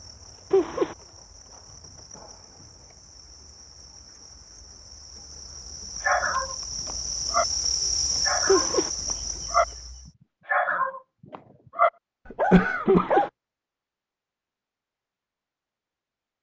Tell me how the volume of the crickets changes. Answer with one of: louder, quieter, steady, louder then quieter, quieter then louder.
louder.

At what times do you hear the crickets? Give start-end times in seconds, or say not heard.
0.0-10.1.